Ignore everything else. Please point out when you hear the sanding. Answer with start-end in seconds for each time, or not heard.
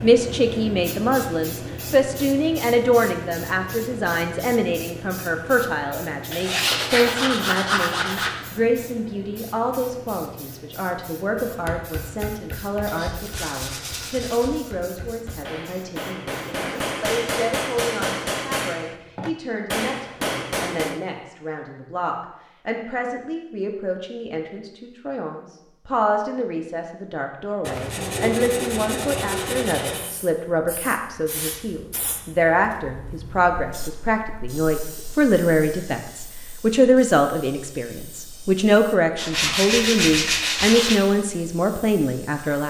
6.3-8.3, 12.8-14.6, 27.6-30.1, 39.1-41.0.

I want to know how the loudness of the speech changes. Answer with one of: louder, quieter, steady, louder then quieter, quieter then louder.
quieter then louder.